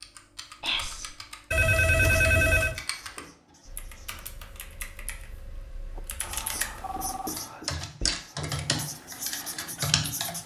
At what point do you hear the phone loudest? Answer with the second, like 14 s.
2 s.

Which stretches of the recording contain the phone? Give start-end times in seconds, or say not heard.
1.5-2.8, 6.3-7.3.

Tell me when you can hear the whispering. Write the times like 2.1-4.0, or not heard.
0.6-1.1, 6.2-8.2.